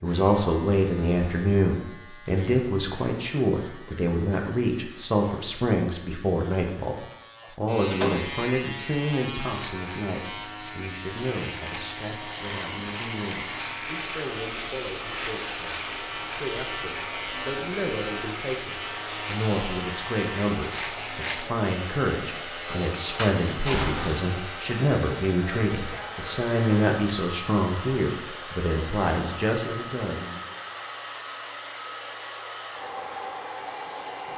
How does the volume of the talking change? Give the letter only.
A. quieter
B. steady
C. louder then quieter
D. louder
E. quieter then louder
E.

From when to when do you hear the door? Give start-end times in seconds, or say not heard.
7.4-8.2, 23.1-24.2.